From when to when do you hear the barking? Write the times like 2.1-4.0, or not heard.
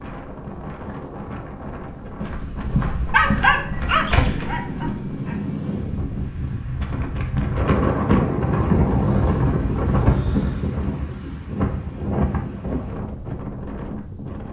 3.1-5.3.